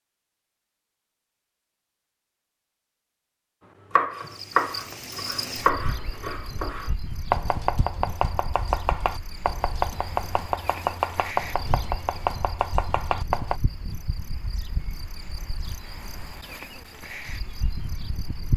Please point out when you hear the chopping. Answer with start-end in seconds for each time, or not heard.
3.9-13.6.